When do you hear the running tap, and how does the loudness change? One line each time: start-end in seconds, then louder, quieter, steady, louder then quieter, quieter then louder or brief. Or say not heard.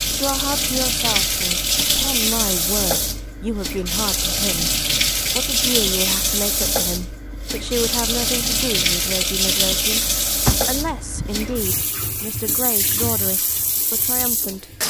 0.0-14.8 quieter.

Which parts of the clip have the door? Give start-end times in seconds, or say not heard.
10.4-11.8.